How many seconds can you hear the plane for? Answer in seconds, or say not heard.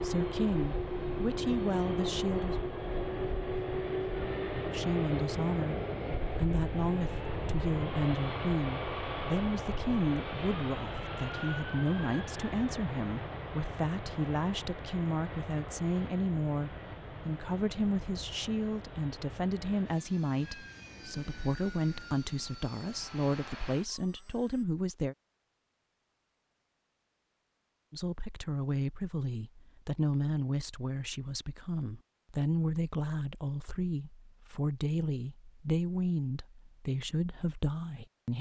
25 s.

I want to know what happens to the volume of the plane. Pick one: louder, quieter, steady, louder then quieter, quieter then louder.
quieter.